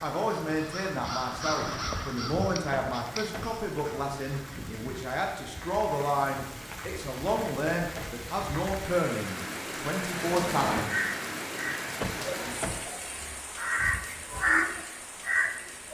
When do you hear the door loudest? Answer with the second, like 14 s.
12 s.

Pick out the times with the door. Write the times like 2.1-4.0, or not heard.
2.7-3.5, 7.3-8.2, 12.0-12.8.